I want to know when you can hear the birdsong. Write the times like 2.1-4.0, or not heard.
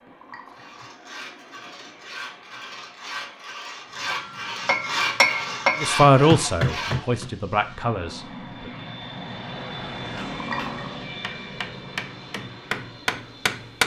not heard.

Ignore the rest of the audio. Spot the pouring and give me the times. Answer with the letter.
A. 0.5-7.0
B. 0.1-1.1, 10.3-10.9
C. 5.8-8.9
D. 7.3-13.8
B.